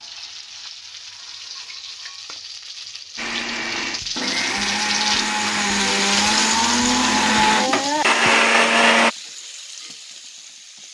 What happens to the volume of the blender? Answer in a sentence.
The loudness of the blender goes up.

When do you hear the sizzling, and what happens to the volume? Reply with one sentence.
You can hear the sizzling from 0.0 to 10.8 s, getting louder then quieter.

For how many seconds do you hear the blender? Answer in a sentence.
The blender can be heard for 6 seconds in total.